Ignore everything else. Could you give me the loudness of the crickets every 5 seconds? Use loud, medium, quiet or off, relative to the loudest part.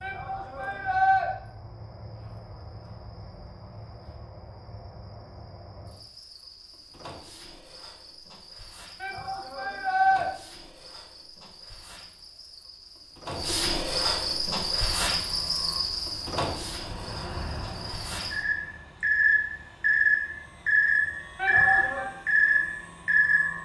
quiet, quiet, medium, medium, loud.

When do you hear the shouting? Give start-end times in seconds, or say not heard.
0.0-1.3, 9.0-10.2, 21.4-22.1.